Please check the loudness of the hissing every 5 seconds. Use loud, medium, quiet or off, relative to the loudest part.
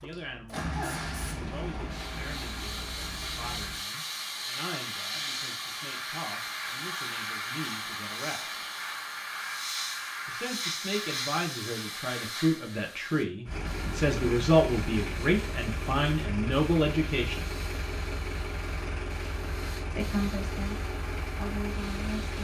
loud, loud, loud, quiet, quiet.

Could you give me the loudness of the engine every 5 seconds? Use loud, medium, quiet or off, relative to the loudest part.
loud, off, loud, loud, loud.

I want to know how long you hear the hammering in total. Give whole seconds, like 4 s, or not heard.
not heard.